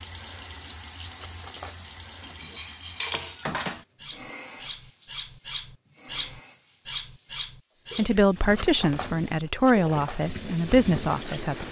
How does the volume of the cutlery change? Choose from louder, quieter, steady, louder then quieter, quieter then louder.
louder then quieter.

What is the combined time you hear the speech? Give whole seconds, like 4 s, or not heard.
4 s.